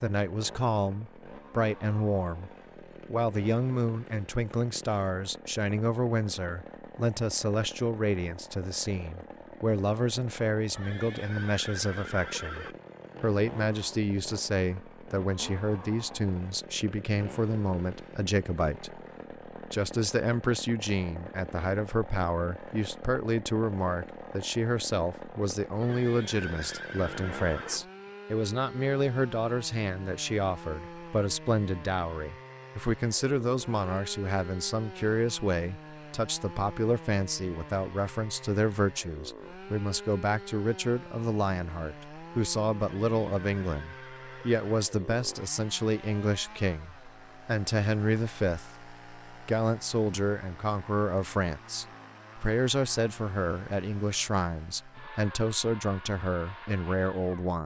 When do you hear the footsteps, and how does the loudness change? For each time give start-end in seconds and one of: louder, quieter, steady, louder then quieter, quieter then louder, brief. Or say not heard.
not heard.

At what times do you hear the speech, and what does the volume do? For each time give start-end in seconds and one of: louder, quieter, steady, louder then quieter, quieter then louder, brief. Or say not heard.
0.0-57.6 steady.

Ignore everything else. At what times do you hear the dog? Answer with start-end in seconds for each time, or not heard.
not heard.